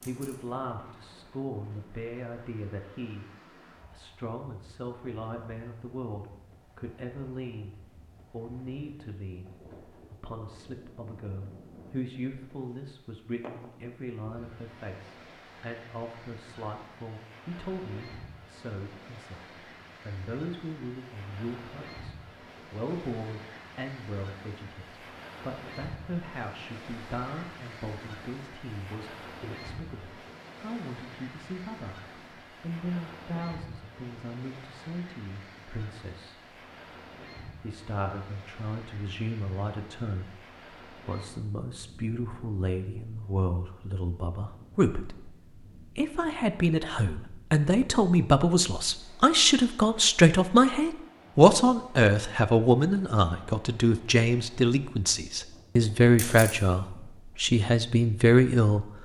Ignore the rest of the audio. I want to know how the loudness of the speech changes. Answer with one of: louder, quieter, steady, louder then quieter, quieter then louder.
louder.